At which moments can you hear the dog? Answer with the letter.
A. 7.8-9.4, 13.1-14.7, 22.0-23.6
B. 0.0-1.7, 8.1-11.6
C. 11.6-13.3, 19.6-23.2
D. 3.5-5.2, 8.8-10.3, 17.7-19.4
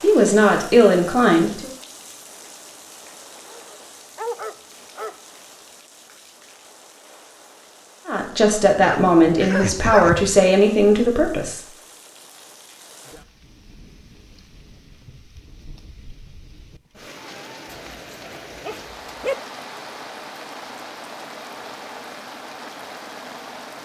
D.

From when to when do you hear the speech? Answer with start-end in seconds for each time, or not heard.
0.0-1.7, 8.1-11.6.